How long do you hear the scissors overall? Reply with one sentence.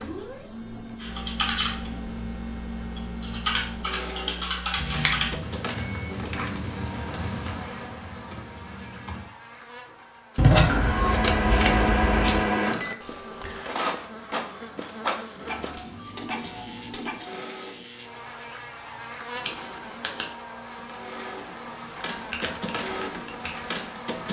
The scissors can be heard for 4 seconds in total.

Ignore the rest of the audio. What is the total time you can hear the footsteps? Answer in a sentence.
The footsteps can't be heard in this clip.